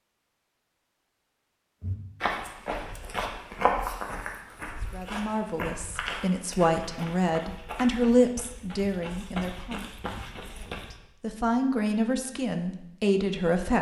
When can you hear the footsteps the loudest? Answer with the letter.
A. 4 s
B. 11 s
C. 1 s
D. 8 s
A.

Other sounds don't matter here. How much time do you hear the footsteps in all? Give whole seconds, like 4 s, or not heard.
9 s.